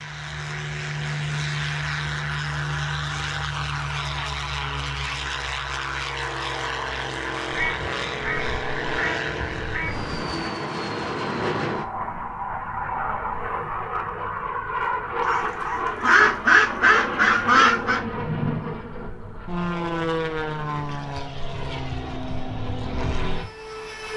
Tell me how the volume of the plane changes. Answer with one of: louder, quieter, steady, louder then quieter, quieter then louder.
steady.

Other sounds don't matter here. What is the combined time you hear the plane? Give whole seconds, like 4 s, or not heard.
24 s.